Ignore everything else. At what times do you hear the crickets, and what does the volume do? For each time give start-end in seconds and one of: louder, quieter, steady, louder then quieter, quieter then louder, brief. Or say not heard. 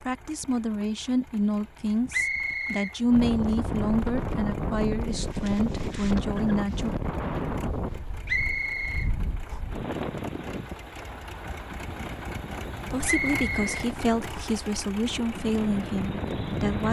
not heard.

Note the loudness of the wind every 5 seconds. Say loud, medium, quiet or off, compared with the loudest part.
loud, loud, medium, loud.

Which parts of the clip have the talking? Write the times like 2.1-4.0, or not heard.
0.0-6.9, 12.9-16.8.